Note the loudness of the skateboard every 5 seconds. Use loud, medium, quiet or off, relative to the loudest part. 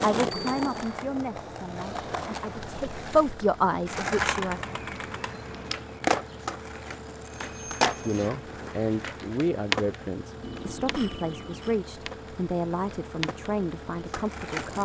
loud, loud, medium.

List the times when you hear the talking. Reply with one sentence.
You can hear the talking from 0.0 to 4.6 s and from 8.1 to 14.8 s.